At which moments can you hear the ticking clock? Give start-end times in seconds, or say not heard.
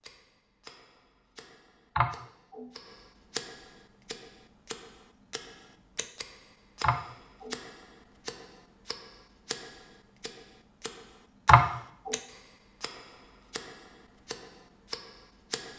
0.0-15.7.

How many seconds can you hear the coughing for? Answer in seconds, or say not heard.
2 s.